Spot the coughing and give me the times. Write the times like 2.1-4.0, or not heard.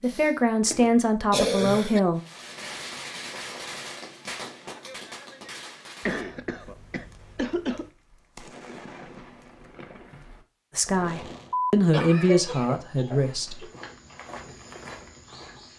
0.1-2.0, 6.0-7.9, 11.5-13.7.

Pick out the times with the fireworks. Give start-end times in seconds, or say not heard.
2.1-11.6.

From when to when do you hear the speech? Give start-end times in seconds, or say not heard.
0.0-2.2, 10.8-13.7.